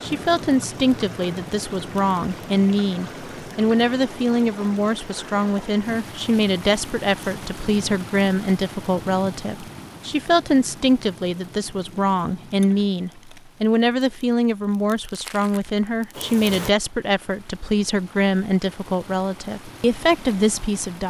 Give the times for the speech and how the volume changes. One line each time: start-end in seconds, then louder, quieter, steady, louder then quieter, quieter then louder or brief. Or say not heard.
0.0-21.0 steady.